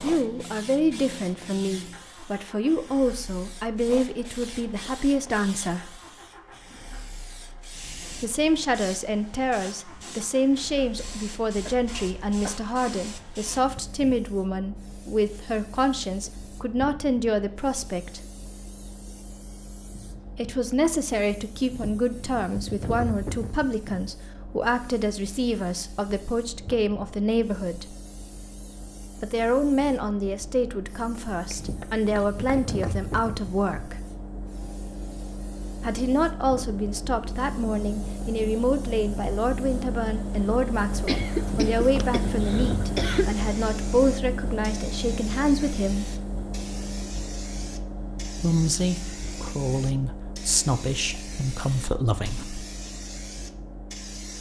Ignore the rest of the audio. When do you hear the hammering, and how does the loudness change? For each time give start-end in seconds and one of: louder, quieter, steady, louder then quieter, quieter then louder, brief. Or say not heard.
not heard.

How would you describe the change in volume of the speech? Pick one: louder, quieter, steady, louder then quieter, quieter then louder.
steady.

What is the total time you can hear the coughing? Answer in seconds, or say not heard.
5 s.